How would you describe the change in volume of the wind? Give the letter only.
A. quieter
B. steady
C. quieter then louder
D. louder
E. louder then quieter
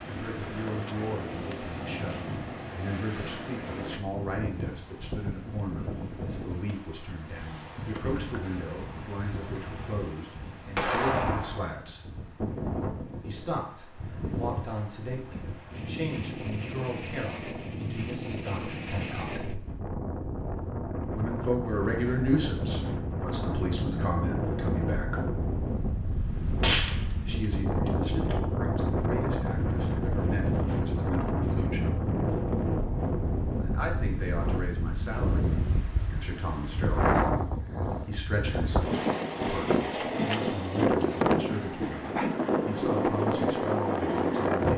D.